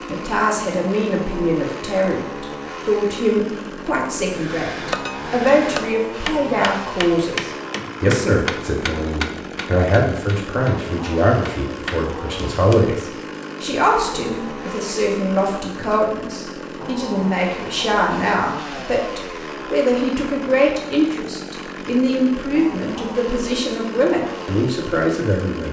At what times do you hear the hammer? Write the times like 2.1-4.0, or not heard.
4.3-12.9.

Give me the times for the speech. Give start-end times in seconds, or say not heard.
0.1-25.6.